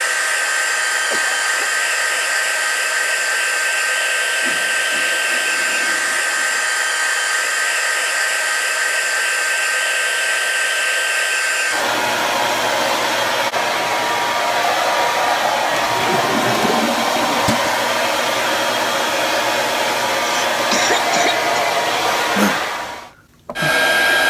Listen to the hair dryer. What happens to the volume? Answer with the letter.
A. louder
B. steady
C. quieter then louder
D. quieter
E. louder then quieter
B.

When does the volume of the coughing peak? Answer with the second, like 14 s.
21 s.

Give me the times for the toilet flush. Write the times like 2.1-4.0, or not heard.
4.4-6.7, 15.7-17.7.